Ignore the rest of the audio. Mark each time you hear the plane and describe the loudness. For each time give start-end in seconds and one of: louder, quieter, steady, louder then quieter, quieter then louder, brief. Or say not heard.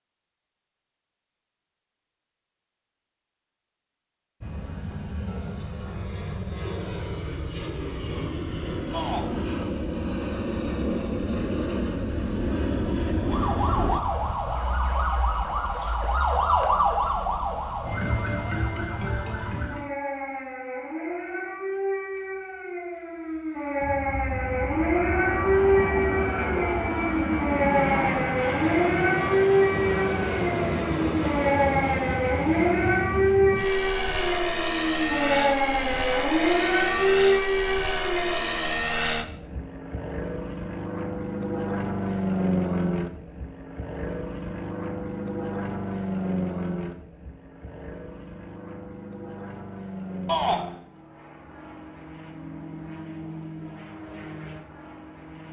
4.4-14.3 louder
23.8-55.4 quieter.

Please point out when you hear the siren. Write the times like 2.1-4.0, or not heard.
13.2-38.8.